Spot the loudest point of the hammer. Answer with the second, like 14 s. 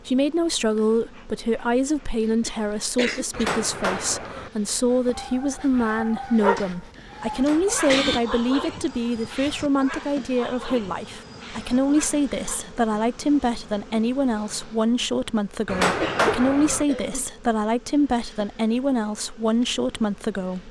16 s.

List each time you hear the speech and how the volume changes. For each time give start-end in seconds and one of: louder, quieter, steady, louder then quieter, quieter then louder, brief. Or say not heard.
0.1-20.6 steady.